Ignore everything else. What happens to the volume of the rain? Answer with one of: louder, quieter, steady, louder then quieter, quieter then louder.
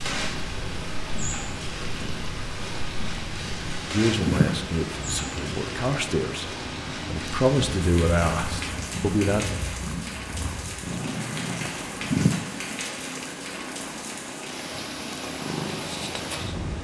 steady.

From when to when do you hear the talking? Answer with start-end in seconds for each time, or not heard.
3.9-9.4.